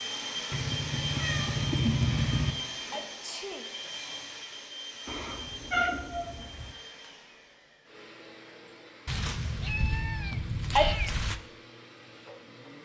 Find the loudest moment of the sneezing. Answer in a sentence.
The volume of the sneezing peaks at 11 seconds.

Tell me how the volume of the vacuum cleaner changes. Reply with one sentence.
The volume of the vacuum cleaner goes down.